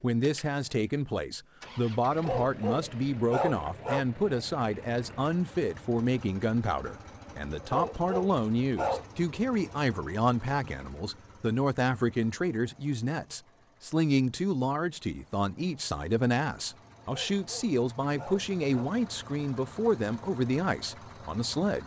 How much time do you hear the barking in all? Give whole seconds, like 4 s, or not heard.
5 s.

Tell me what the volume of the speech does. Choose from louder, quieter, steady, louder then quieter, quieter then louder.
steady.